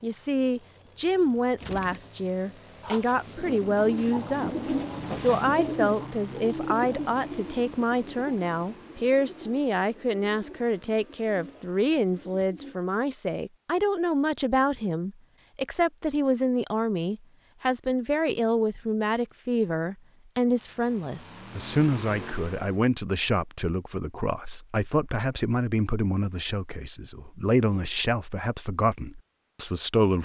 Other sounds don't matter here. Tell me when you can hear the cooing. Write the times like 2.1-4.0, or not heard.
1.6-12.8.